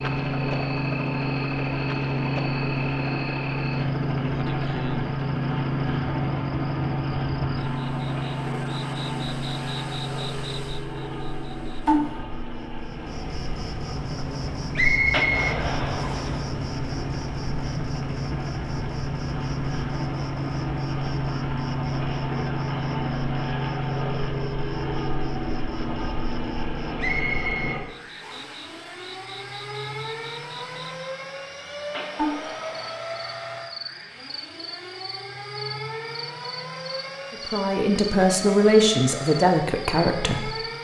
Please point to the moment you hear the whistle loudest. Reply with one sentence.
The volume of the whistle peaks at 15 seconds.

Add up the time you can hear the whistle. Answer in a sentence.
The whistle can be heard for 3 seconds in total.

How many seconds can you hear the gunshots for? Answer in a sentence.
The gunshots can be heard for 3 seconds in total.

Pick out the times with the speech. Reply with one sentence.
You can hear the speech from 37.3 to 40.5 s.